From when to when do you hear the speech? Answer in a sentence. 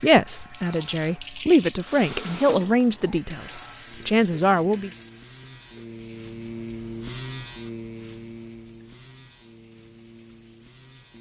You can hear the speech from 0.0 to 4.9 s.